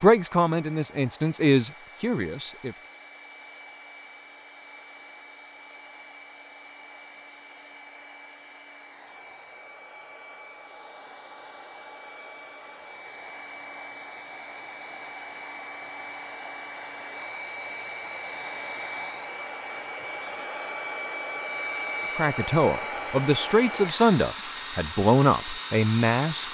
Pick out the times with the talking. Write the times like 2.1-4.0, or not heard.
0.0-2.8, 22.1-26.4.